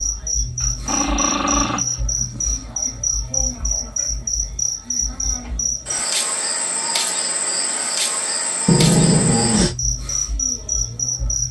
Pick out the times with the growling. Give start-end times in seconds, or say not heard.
0.6-2.5, 8.7-9.8.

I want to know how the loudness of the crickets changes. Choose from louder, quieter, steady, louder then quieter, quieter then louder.
steady.